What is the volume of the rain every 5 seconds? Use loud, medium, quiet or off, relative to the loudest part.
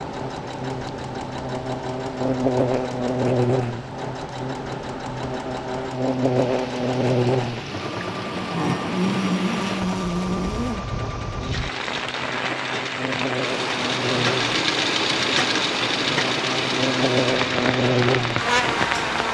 quiet, medium, loud, loud.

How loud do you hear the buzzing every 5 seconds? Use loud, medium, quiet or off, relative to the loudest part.
loud, loud, medium, loud.